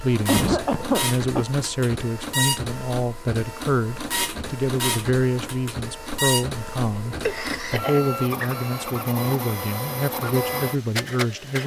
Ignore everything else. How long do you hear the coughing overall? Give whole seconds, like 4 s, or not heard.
2 s.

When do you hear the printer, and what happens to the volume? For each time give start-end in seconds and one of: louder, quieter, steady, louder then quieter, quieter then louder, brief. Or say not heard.
0.0-11.6 steady.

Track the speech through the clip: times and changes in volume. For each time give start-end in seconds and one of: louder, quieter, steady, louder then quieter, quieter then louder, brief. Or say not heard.
0.0-11.6 steady.